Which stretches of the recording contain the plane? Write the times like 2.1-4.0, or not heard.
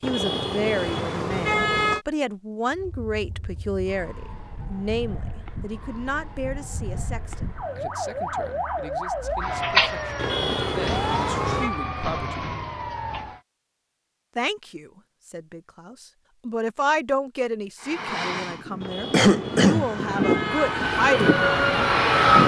17.8-22.4.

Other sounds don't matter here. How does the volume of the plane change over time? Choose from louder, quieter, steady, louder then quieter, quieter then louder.
louder.